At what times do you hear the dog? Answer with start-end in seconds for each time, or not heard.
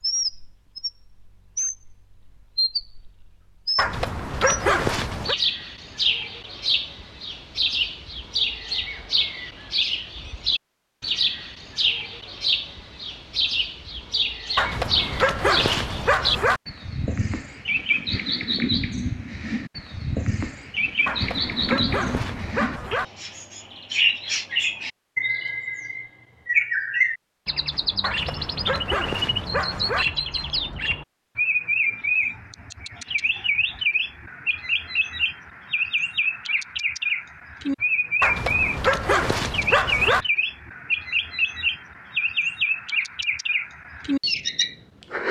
3.8-5.3, 14.6-16.6, 21.1-23.1, 28.0-30.1, 38.2-40.2.